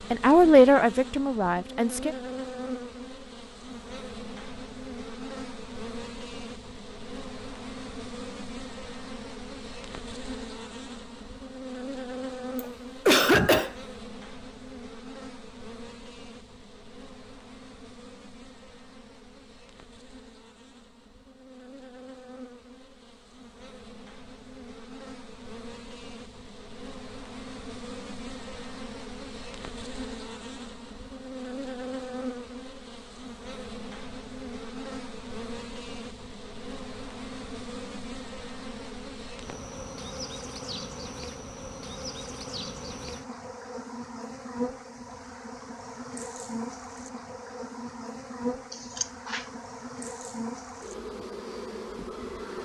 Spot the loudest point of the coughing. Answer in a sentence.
The loudest moment of the coughing is at 13 seconds.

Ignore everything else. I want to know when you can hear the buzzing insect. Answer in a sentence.
The buzzing insect can be heard from 0.0 to 52.6 s.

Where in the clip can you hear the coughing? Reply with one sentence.
The coughing can be heard from 12.6 to 13.8 s and from 48.7 to 49.5 s.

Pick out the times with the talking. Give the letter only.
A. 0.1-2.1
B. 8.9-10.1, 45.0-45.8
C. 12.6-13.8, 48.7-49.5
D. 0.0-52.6
A.